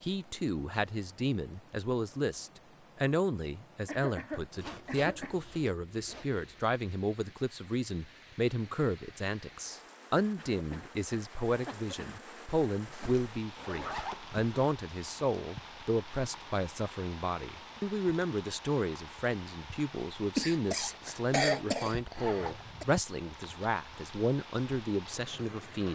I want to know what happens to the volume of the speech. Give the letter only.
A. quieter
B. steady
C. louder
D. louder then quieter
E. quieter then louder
B.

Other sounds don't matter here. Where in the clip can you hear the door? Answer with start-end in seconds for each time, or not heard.
not heard.